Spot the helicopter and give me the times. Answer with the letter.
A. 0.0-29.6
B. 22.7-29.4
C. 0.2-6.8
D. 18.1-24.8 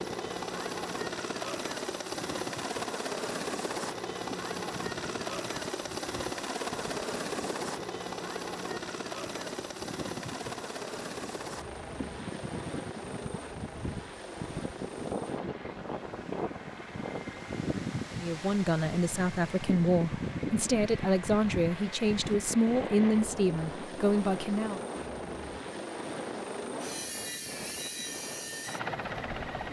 A.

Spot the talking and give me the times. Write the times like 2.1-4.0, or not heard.
18.1-24.8.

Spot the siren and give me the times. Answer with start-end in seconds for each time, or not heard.
not heard.